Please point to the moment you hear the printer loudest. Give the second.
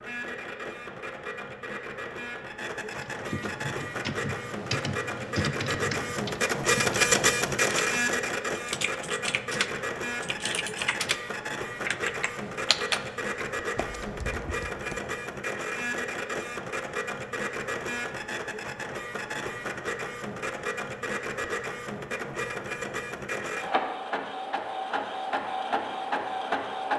7 s.